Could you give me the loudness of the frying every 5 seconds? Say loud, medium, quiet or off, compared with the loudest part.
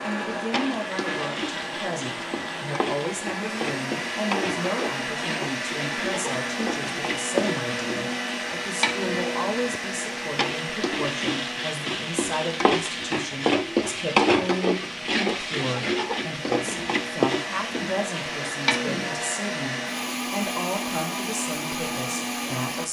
medium, medium, loud, loud, off.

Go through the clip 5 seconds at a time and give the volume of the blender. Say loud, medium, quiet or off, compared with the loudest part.
loud, loud, medium, loud, loud.